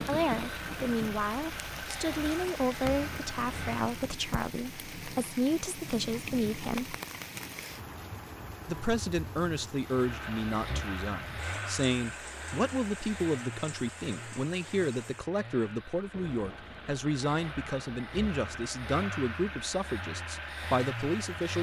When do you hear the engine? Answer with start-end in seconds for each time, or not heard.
0.0-3.9, 9.8-21.5.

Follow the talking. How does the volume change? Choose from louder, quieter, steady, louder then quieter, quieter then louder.
steady.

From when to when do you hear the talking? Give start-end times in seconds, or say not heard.
0.0-7.0, 8.7-21.5.